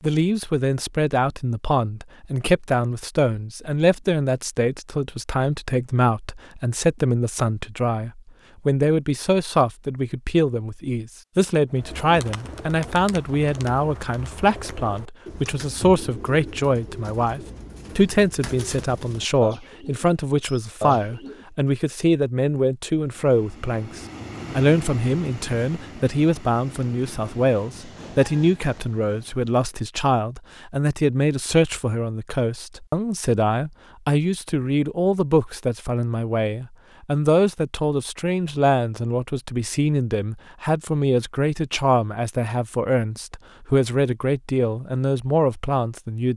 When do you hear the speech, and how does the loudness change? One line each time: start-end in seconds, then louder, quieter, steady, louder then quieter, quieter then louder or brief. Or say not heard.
0.0-46.3 steady.